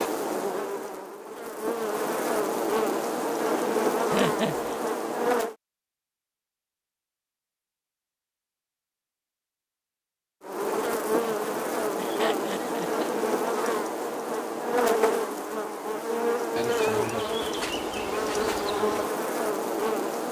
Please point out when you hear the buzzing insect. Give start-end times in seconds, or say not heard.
0.0-5.5, 10.4-20.2.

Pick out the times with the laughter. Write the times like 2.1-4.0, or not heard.
4.1-4.8, 11.2-13.1.